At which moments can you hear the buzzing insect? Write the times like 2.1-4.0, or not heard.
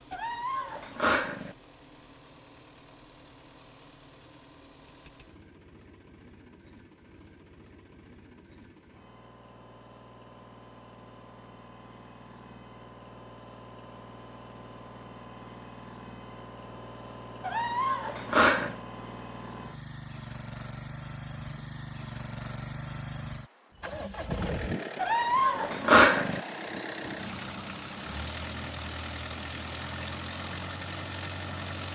not heard.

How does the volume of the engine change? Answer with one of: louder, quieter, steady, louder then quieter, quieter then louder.
louder.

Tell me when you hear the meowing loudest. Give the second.
26 s.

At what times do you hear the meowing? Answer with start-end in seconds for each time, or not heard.
0.1-1.6, 17.4-18.8, 24.9-26.4.